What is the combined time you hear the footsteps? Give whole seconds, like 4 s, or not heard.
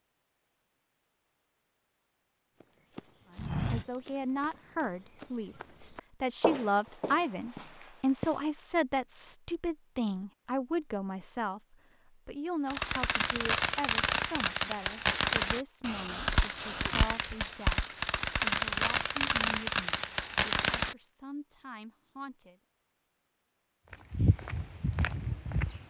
8 s.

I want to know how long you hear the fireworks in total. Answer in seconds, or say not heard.
8 s.